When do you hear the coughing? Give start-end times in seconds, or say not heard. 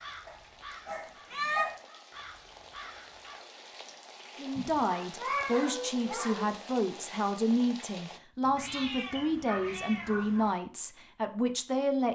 not heard.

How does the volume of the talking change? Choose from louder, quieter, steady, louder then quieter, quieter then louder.
steady.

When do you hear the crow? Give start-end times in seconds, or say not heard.
0.0-3.5.